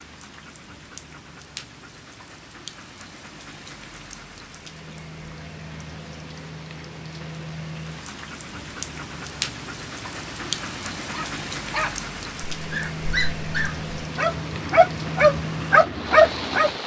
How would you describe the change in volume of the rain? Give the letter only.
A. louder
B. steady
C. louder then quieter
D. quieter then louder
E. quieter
A.